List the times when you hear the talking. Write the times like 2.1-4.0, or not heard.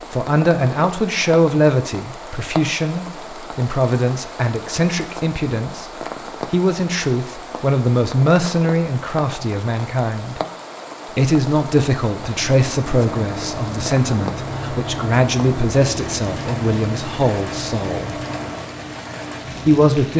0.1-10.4, 11.2-18.1, 19.6-20.1.